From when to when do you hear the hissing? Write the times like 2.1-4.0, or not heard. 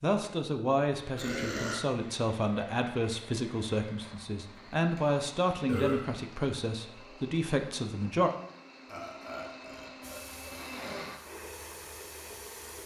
10.0-12.8.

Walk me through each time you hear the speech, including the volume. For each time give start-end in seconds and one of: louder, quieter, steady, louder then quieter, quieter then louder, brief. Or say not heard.
0.0-8.3 steady.